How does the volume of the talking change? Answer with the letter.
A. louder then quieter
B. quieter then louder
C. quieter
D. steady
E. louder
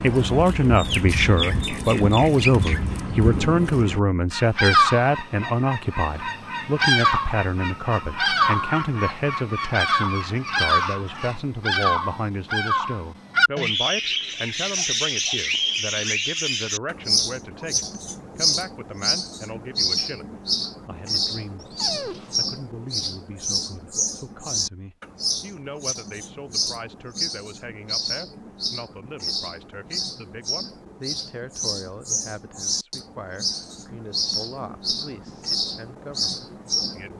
C.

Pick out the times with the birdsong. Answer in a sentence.
You can hear the birdsong from 0.0 to 37.1 s.